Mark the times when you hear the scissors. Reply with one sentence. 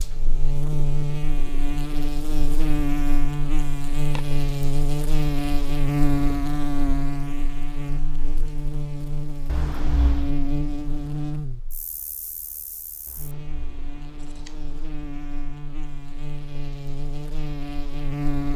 The scissors can be heard from 9.4 to 10.3 s and from 13.1 to 14.8 s.